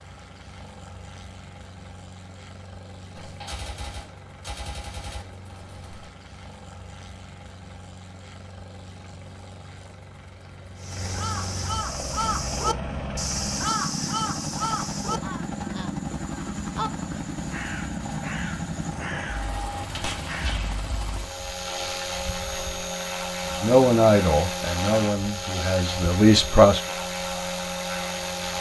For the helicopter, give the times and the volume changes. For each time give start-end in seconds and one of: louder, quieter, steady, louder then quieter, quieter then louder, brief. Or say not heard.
0.0-28.5 louder.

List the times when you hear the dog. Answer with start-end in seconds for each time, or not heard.
not heard.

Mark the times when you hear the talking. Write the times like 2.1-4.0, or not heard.
23.4-26.8.